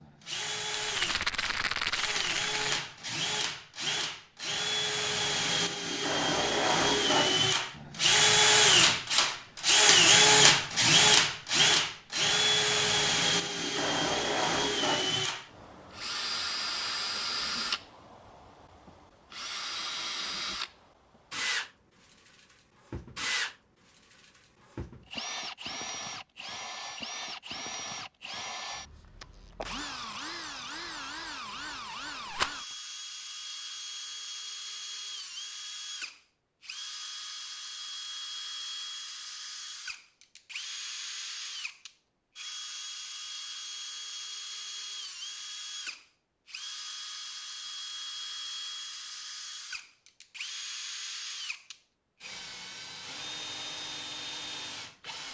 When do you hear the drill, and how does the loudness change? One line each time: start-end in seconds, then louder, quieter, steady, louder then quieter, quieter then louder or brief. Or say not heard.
0.0-55.2 quieter.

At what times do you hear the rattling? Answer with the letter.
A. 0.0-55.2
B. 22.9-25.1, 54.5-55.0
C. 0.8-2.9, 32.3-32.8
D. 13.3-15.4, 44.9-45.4
C.